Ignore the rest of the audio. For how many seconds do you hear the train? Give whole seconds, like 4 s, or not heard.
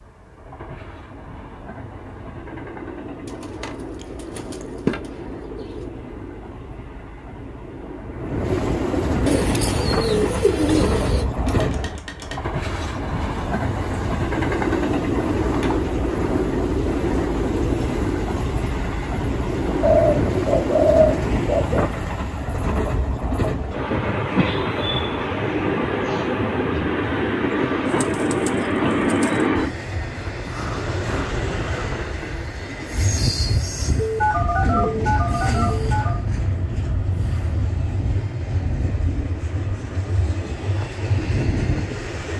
42 s.